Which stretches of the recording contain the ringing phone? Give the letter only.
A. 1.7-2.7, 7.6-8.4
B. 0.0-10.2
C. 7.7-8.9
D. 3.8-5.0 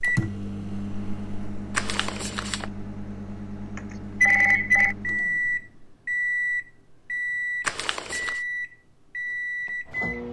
D.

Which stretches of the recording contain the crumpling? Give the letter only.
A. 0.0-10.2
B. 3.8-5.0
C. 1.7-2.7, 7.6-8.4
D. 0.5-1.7
C.